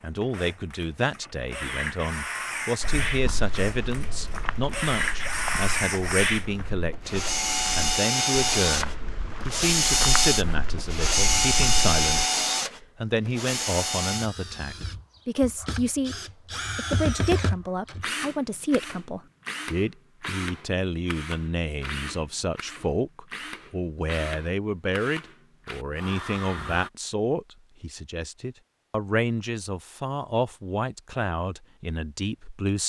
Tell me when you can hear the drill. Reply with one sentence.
You can hear the drill from 0.0 to 26.9 s.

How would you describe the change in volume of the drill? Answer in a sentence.
The loudness of the drill goes up, then down.